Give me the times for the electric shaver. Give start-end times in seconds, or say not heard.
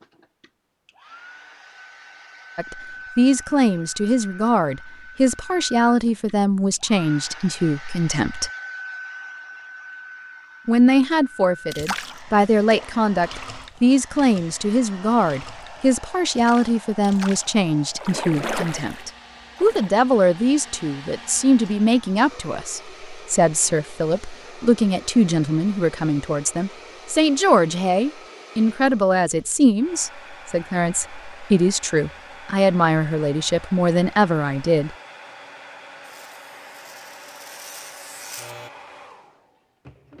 36.0-38.7.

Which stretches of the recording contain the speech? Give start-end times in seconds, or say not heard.
2.5-8.5, 10.7-35.0.